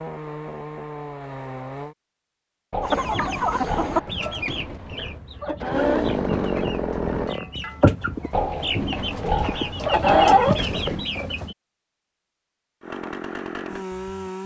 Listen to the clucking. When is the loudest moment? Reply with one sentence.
The loudest moment of the clucking is at 10 seconds.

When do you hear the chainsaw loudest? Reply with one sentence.
The volume of the chainsaw peaks at 6 seconds.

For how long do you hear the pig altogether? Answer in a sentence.
You can hear the pig for 5 seconds altogether.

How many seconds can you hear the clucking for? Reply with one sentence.
You can hear the clucking for 9 seconds altogether.